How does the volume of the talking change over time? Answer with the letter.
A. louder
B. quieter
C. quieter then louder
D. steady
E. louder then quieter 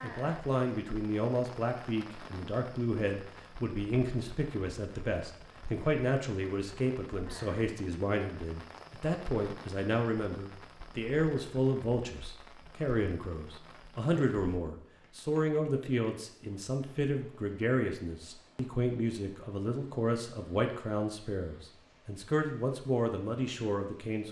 D.